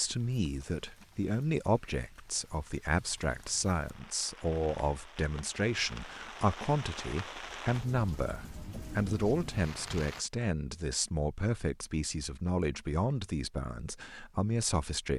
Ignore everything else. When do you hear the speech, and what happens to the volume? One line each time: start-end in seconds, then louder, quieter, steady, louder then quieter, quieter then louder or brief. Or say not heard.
0.0-15.1 steady.